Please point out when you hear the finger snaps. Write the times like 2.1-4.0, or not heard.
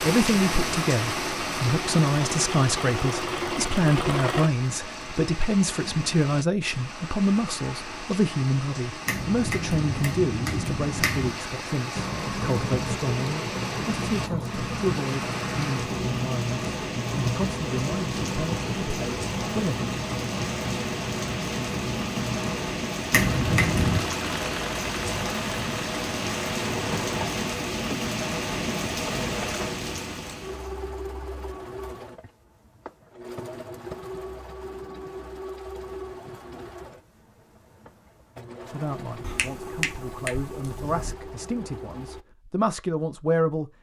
9.1-11.3, 23.1-24.1, 39.2-41.1.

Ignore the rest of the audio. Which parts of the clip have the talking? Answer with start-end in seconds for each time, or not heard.
0.0-19.9, 38.6-43.7.